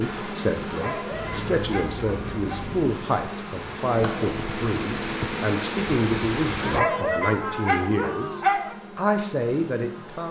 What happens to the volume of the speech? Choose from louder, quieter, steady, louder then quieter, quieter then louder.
steady.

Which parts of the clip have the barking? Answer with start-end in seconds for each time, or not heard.
0.7-2.6, 6.6-8.8.